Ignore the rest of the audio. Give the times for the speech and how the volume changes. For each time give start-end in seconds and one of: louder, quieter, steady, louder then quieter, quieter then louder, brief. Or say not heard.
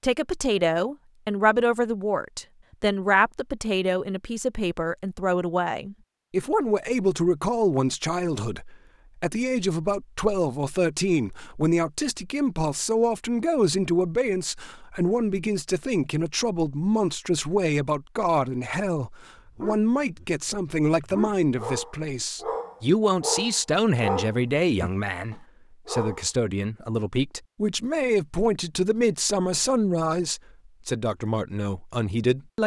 0.0-32.6 steady.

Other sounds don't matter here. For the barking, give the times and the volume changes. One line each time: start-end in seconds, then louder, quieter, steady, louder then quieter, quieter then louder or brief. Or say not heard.
19.4-26.3 louder then quieter.